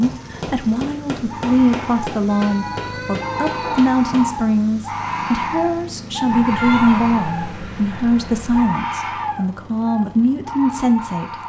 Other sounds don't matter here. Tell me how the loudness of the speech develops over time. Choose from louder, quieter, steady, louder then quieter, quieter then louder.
steady.